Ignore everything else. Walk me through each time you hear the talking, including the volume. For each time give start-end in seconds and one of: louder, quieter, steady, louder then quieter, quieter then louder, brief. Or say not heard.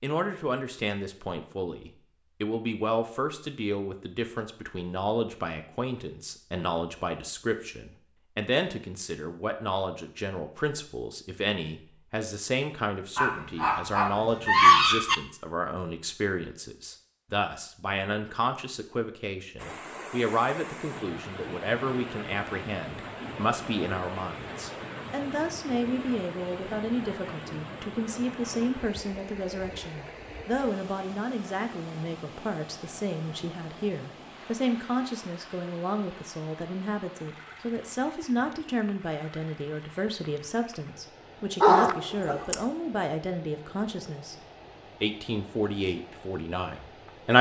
0.0-44.4 steady
45.0-47.3 brief.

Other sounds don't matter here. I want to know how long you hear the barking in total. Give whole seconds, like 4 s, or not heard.
3 s.